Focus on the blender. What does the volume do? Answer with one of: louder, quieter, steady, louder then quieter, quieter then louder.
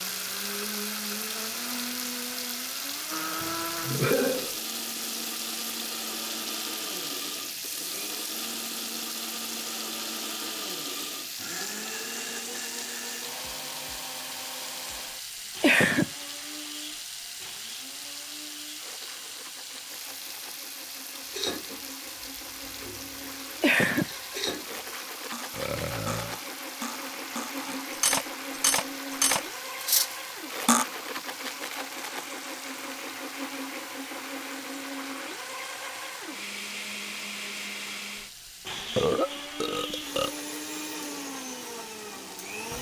quieter then louder.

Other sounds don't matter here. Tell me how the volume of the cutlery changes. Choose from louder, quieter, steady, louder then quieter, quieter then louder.
louder.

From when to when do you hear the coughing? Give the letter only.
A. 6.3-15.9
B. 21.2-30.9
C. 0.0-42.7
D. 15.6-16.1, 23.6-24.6
D.